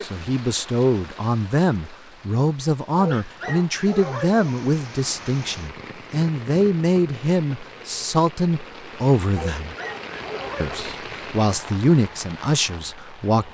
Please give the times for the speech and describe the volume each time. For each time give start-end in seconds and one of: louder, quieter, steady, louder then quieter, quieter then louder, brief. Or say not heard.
0.0-9.8 steady
10.6-13.5 brief.